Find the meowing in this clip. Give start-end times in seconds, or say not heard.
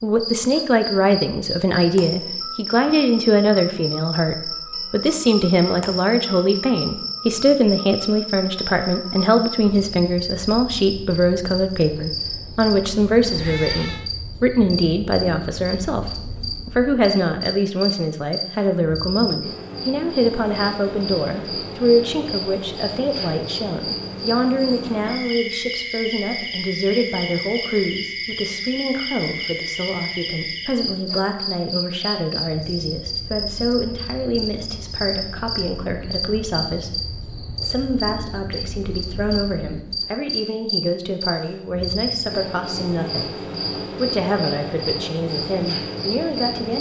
13.2-14.1.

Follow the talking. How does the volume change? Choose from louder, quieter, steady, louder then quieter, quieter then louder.
quieter.